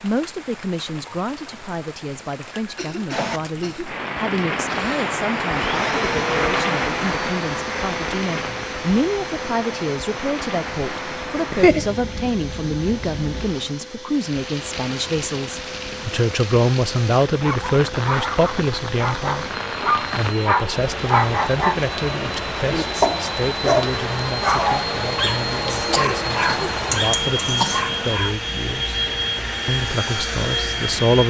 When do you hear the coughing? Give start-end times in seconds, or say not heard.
2.5-4.0, 11.3-11.8, 25.7-27.9.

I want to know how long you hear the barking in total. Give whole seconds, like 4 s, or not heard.
11 s.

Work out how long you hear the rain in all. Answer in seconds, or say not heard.
31 s.